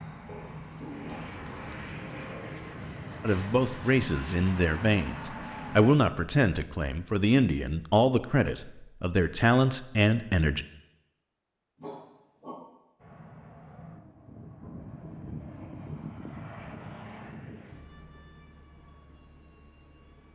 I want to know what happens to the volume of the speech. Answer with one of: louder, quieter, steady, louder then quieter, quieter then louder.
steady.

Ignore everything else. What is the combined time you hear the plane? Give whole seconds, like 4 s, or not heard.
13 s.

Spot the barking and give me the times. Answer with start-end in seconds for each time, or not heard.
0.2-1.9, 11.8-12.6.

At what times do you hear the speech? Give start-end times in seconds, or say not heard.
3.2-10.7.